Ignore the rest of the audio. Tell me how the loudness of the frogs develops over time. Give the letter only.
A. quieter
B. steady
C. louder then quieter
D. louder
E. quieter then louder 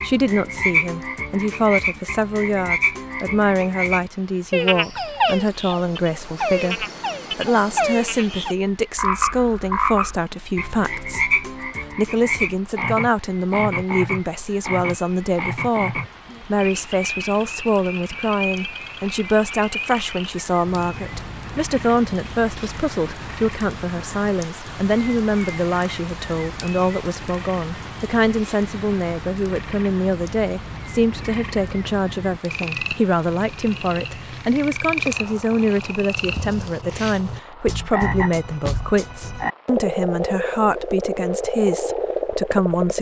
E.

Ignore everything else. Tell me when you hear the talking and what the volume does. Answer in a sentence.
You can hear the talking from 0.0 to 42.9 s, at a steady volume.